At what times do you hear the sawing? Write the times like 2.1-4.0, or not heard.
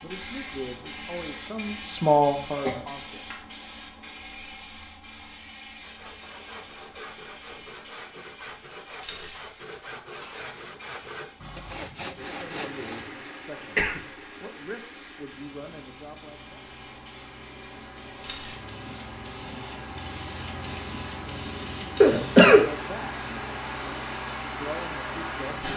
5.8-13.1.